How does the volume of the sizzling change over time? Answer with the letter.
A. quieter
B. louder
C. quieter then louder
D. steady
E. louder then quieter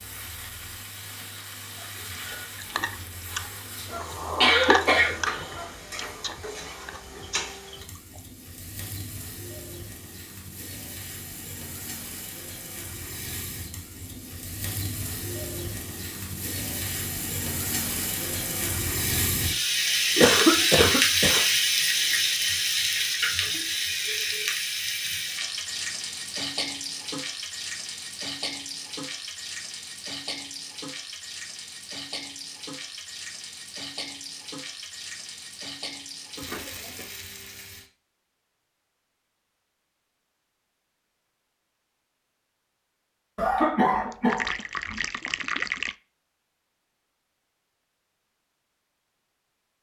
E.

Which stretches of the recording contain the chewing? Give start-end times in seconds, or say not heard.
1.8-8.2.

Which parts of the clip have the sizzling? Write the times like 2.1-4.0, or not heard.
0.0-37.9.